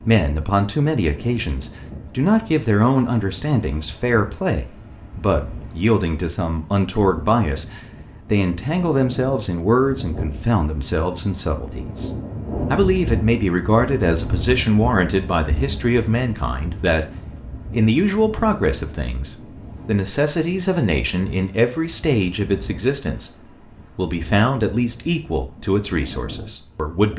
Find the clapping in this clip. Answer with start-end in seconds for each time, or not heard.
not heard.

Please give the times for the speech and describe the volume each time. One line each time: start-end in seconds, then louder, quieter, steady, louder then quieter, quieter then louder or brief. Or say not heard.
0.1-27.1 steady.